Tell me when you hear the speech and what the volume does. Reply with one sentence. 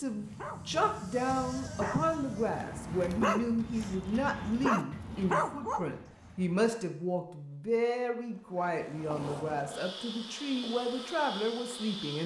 You can hear the speech from 0.0 to 12.2 s, at a steady volume.